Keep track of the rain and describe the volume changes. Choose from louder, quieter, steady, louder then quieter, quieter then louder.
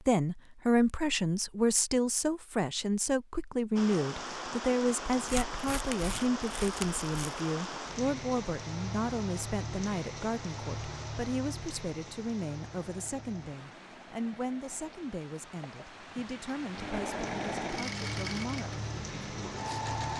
quieter then louder.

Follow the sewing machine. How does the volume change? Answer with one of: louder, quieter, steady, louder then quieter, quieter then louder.
louder then quieter.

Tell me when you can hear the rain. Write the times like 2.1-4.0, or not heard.
3.8-20.1.